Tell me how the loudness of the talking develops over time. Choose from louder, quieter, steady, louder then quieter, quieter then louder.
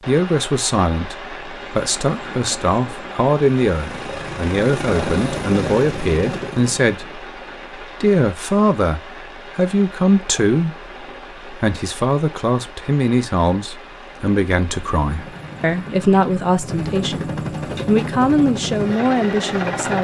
steady.